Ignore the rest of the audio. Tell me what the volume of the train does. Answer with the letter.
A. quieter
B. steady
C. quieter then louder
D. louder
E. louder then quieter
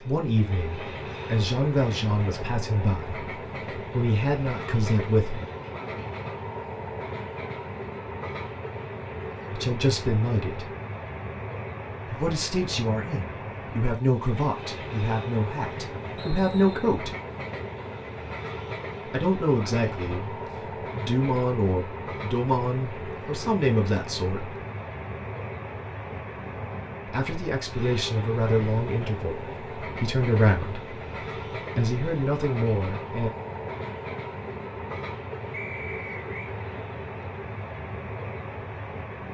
B.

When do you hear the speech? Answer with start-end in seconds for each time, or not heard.
0.0-5.5, 9.5-10.7, 12.1-17.1, 19.1-24.6, 27.1-31.0, 31.8-33.3.